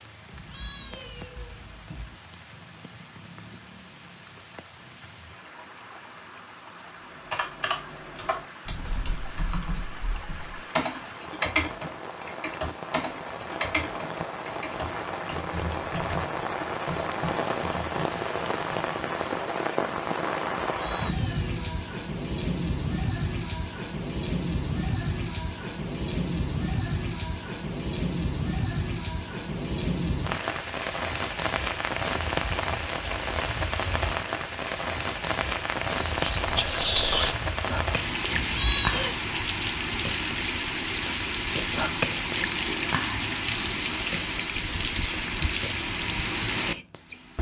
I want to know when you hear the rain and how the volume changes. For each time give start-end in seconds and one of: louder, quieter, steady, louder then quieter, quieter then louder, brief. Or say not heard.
0.0-47.3 louder.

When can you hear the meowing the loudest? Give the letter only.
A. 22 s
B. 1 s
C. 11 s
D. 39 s
D.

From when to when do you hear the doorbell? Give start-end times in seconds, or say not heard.
not heard.